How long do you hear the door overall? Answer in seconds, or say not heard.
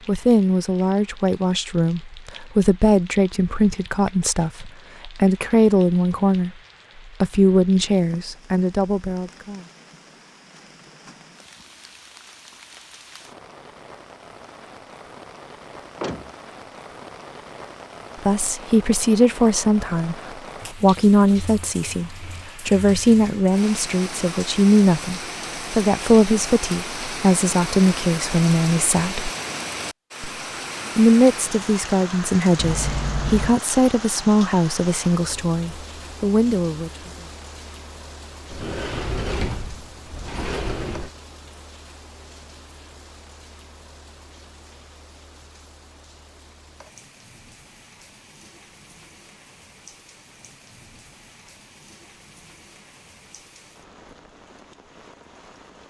4 s.